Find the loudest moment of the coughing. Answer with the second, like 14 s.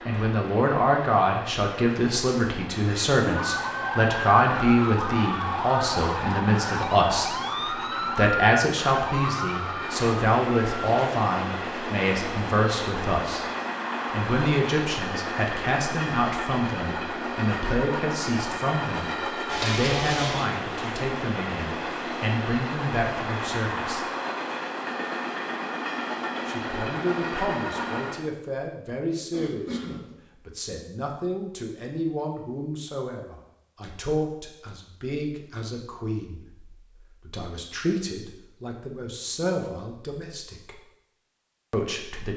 20 s.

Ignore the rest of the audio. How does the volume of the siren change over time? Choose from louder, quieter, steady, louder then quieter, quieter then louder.
steady.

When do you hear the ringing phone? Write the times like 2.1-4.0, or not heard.
not heard.